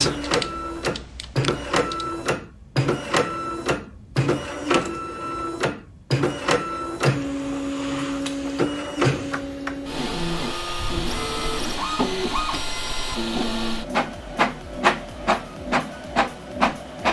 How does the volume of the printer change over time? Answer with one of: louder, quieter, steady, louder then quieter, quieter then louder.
steady.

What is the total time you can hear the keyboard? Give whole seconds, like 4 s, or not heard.
2 s.